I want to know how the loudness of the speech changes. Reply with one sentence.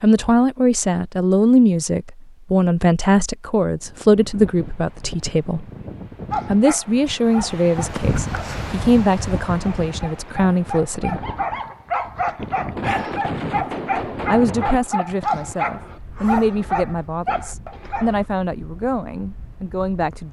The volume of the speech goes down.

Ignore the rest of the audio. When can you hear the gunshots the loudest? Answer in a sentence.
The loudest moment of the gunshots is at 13 seconds.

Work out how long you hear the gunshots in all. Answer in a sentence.
The gunshots can be heard for 2 seconds in total.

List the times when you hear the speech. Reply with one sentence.
The speech can be heard from 0.0 to 5.7 s, from 6.5 to 11.2 s and from 13.6 to 20.2 s.